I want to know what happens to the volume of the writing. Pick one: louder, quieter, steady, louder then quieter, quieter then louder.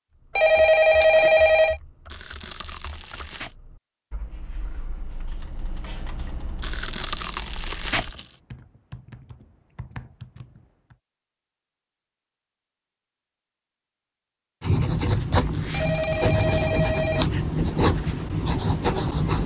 steady.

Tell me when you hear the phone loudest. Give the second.
1 s.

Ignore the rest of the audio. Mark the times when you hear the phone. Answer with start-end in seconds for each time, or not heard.
0.3-1.8, 15.7-17.2.